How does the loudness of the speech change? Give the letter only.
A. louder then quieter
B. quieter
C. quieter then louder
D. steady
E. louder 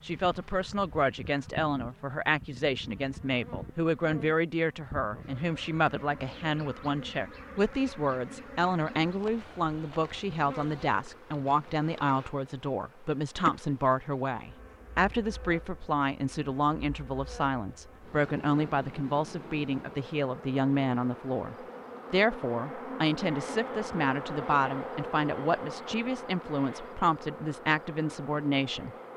D.